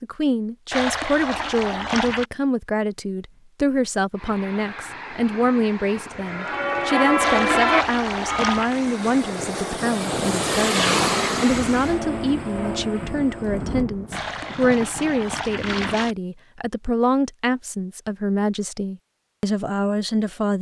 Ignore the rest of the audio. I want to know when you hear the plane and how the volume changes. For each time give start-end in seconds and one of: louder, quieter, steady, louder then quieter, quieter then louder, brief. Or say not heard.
4.2-13.8 louder then quieter.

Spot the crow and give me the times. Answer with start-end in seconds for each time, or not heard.
not heard.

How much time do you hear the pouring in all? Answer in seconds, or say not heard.
5 s.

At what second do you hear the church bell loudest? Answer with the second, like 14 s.
8 s.